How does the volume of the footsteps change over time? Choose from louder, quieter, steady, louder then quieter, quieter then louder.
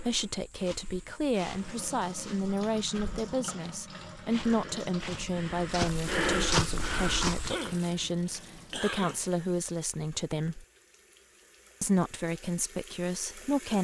louder.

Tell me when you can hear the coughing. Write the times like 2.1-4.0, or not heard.
7.5-9.3.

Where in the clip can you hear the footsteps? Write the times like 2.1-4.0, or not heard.
0.0-7.5.